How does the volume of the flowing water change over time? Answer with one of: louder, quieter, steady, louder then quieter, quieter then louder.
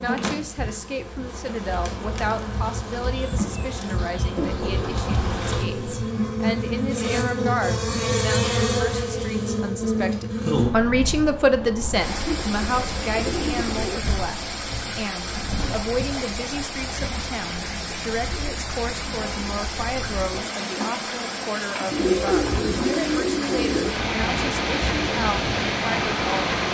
louder.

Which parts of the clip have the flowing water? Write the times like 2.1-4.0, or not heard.
11.9-26.6.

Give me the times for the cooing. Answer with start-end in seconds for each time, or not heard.
4.3-6.0, 12.2-14.0, 21.9-23.9.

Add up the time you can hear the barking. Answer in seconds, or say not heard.
not heard.